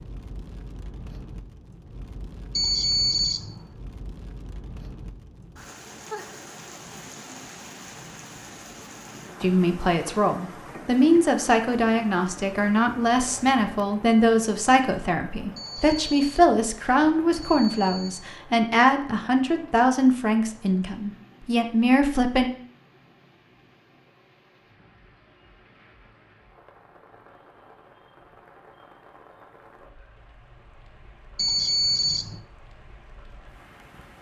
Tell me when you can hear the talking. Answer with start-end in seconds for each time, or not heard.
9.4-22.5.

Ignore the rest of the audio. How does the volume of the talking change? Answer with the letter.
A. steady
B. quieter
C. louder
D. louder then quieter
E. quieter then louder
A.